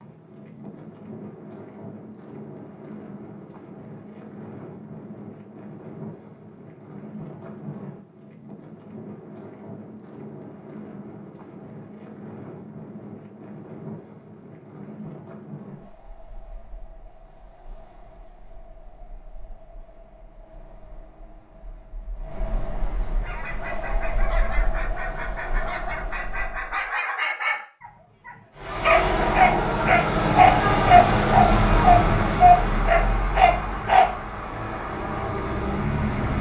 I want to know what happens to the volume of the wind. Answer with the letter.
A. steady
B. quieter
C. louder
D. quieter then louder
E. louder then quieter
D.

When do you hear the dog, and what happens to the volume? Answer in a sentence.
You can hear the dog from 23.2 to 34.0 s, getting louder.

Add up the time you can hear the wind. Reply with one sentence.
The wind can be heard for 27 seconds in total.